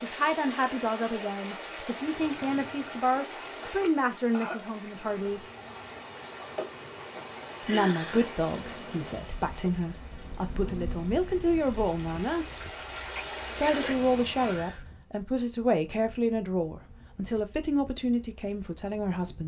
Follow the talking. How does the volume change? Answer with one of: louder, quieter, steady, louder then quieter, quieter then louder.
steady.